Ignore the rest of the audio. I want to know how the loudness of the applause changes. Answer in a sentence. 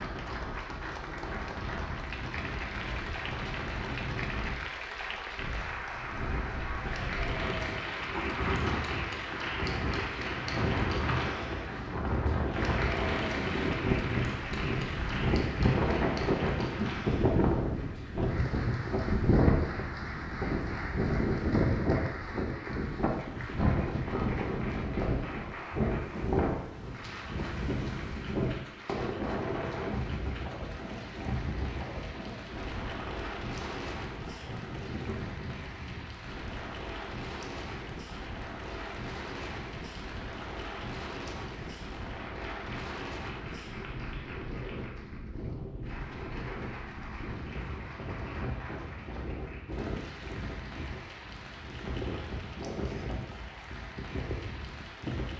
The loudness of the applause goes down.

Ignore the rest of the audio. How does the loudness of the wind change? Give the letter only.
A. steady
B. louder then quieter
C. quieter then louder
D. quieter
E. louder
B.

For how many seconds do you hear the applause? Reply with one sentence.
The applause can be heard for 55 seconds in total.